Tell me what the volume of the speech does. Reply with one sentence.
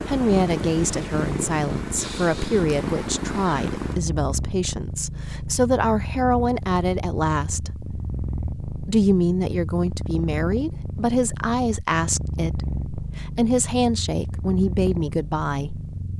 The loudness of the speech stays about the same.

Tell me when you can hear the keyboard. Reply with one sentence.
You can't hear the keyboard here.